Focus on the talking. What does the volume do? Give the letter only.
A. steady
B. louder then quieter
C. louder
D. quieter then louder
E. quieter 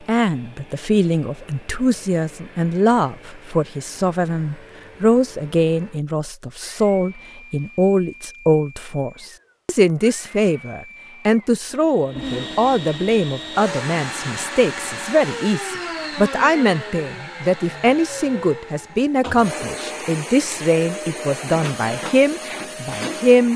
A.